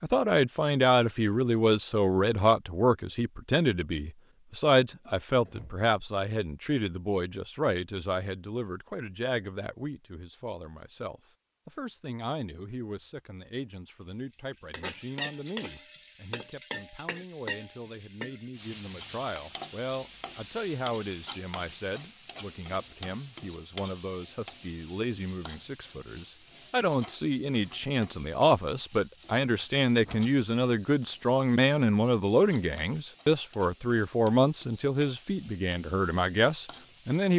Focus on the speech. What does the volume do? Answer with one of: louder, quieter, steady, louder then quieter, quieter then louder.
quieter then louder.